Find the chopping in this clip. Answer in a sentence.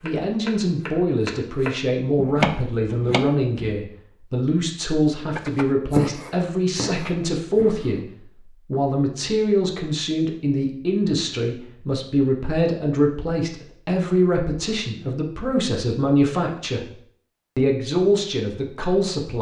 You can hear the chopping from 0.0 to 3.8 s and from 5.3 to 8.1 s.